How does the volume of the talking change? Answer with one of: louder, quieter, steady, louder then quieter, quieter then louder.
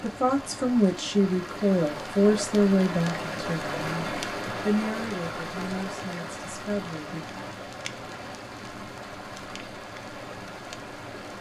quieter.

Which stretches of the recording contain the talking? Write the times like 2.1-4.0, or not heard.
0.0-7.2.